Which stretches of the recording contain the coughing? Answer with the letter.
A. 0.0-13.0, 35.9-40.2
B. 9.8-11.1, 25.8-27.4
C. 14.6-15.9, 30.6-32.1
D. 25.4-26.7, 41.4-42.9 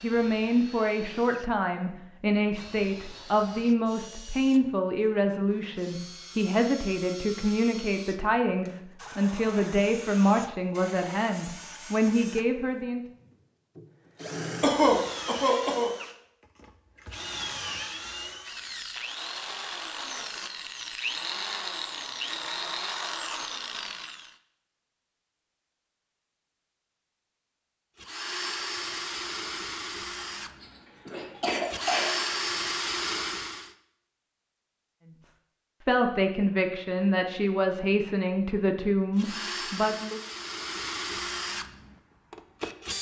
C.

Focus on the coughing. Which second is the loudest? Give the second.
15 s.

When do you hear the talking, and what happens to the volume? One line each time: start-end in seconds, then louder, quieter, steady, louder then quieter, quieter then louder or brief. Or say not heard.
0.0-13.0 steady
35.9-40.2 steady.